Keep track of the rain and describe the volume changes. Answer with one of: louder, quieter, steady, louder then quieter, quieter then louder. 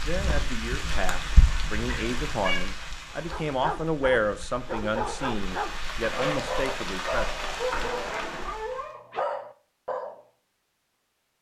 quieter then louder.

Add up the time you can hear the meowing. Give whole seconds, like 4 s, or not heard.
2 s.